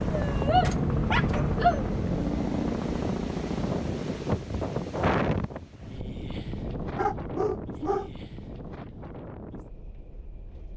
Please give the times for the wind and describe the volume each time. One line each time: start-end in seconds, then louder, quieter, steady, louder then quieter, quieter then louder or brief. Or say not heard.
0.0-10.7 louder then quieter.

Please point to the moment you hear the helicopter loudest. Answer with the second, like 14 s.
1 s.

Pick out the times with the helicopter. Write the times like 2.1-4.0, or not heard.
0.0-4.5.